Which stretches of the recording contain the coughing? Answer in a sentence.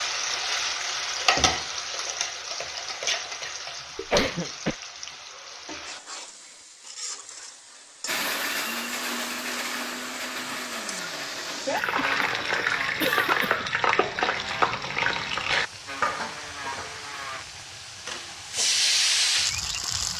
The coughing can be heard from 4.0 to 4.8 s, from 11.8 to 12.2 s and from 13.0 to 13.7 s.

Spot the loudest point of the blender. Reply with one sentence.
The loudest moment of the blender is at 9 seconds.